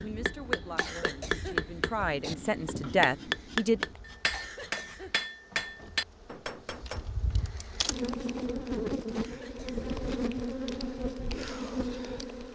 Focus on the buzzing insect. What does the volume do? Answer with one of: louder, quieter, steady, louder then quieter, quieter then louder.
louder.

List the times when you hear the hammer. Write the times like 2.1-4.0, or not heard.
0.0-7.1.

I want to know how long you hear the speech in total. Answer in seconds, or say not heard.
4 s.